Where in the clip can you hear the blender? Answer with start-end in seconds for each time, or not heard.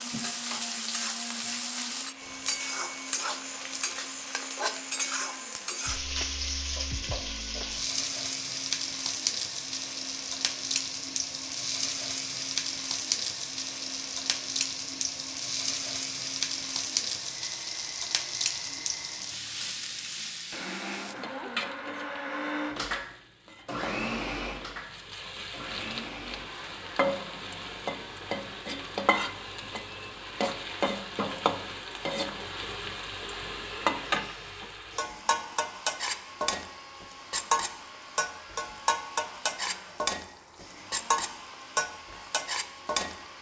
0.0-43.3.